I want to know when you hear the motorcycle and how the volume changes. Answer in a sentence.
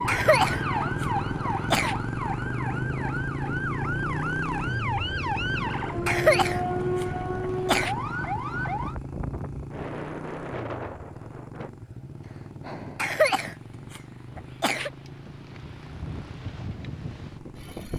The motorcycle can be heard from 0.0 to 17.9 s, getting quieter.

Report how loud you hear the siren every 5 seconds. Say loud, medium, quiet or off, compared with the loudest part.
loud, loud, off, off.